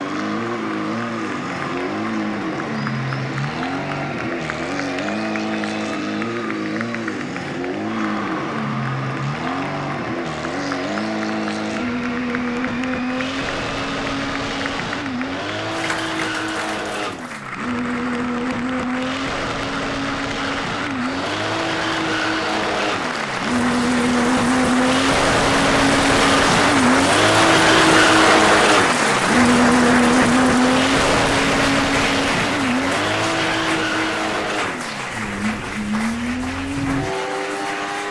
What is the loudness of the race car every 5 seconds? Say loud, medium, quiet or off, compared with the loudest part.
medium, medium, medium, medium, medium, loud, loud, medium.